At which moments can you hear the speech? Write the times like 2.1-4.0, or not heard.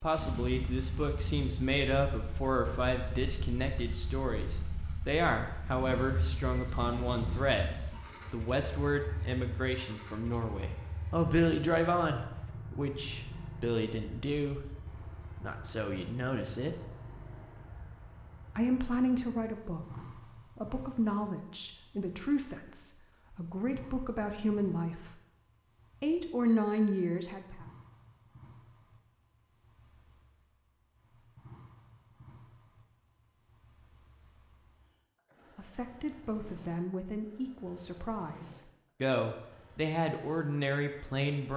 0.0-14.6, 15.4-16.8, 18.6-25.1, 26.0-27.6, 35.5-41.5.